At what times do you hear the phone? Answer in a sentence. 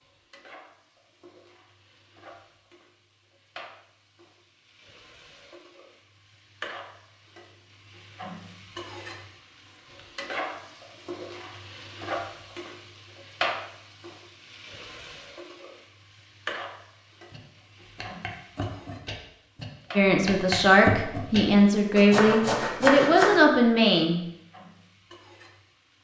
The phone can't be heard in this clip.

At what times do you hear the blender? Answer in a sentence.
The blender can't be heard in this clip.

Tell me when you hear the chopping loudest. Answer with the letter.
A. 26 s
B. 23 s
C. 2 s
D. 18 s
B.